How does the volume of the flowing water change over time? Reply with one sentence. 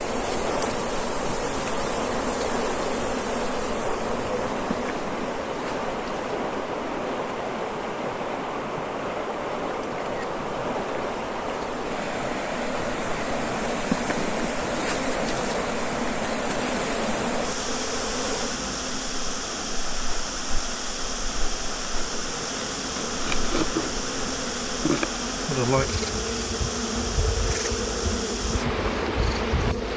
The loudness of the flowing water stays about the same.